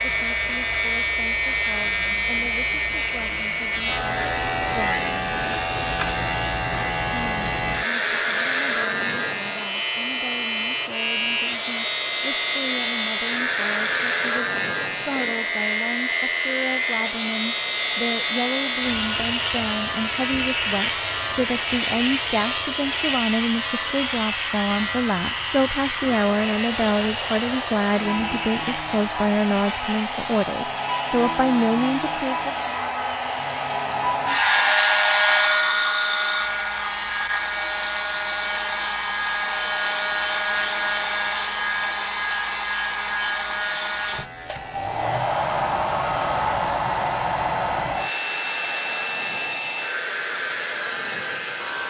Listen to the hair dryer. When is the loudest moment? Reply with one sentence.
The volume of the hair dryer peaks at 35 seconds.